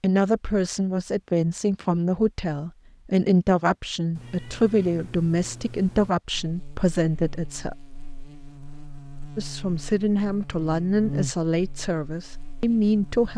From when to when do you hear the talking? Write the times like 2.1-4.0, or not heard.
0.0-7.8, 9.3-13.3.